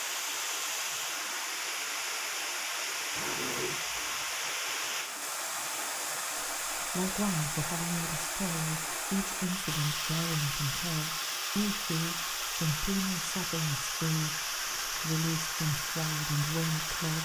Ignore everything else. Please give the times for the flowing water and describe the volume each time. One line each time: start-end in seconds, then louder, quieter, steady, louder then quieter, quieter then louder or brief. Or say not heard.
0.0-17.2 steady.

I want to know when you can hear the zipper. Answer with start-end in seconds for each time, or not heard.
3.1-4.3.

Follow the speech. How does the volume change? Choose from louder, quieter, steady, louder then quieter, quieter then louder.
steady.